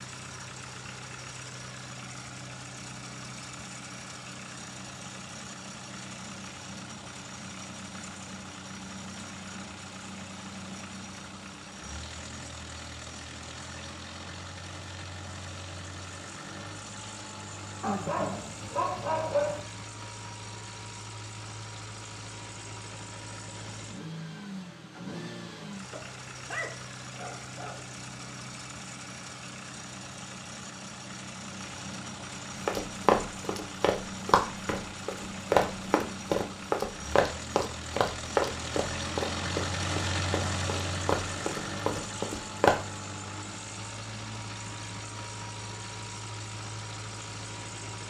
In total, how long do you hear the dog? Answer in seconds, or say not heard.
4 s.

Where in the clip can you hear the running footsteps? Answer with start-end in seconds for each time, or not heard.
32.6-42.8.